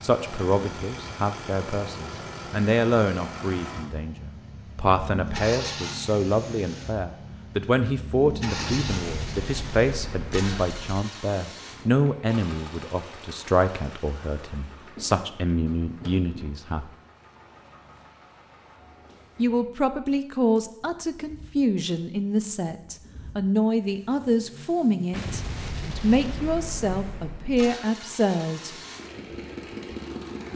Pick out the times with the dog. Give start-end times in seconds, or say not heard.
not heard.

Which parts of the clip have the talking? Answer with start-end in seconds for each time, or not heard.
0.0-16.9, 19.4-28.8.